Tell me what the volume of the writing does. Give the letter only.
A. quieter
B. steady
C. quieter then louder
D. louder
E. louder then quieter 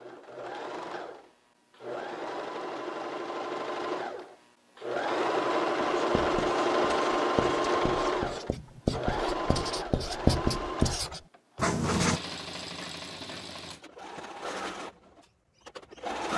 D.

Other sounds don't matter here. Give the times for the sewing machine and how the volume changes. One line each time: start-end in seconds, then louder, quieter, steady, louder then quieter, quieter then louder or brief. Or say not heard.
0.0-16.3 louder then quieter.